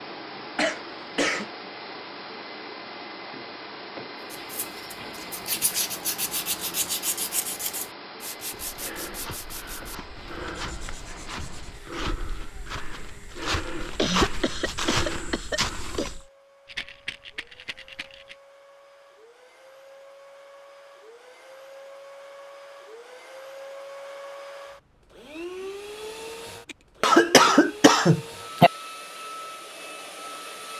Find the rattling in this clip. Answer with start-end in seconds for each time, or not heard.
16.6-18.4.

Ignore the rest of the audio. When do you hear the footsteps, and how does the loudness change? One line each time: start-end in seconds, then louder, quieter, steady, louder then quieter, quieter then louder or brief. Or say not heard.
8.6-16.2 louder.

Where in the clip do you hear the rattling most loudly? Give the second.
17 s.